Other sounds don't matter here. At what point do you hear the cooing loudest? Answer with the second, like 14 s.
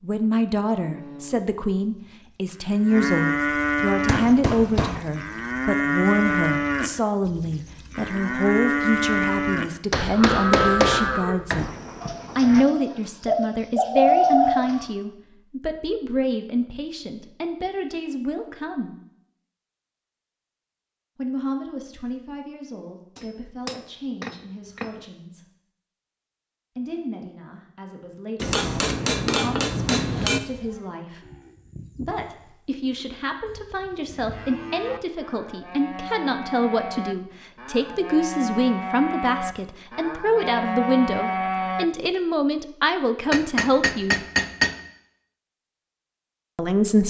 14 s.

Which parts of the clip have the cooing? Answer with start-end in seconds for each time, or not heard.
12.0-14.9.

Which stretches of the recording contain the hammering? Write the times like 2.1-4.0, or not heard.
4.0-5.0, 9.9-11.7, 23.1-25.1, 28.4-30.4, 43.3-44.8.